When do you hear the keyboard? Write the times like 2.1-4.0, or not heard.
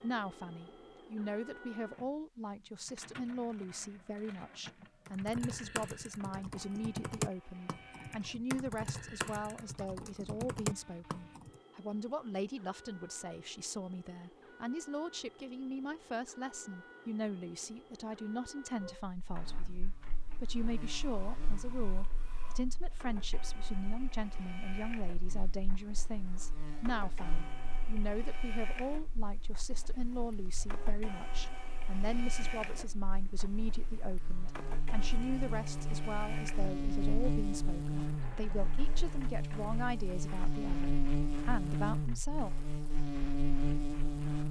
5.0-11.6.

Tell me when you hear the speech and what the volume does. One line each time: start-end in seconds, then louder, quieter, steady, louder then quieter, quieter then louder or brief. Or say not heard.
0.0-42.5 steady.